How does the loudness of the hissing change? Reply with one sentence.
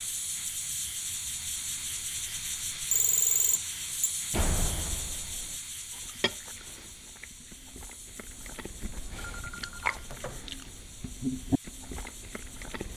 The volume of the hissing goes down.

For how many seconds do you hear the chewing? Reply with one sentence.
You can hear the chewing for 7 seconds altogether.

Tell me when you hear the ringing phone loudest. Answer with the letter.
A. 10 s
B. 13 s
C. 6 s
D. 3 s
D.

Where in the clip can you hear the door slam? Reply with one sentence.
The door slam can be heard from 4.3 to 5.5 s.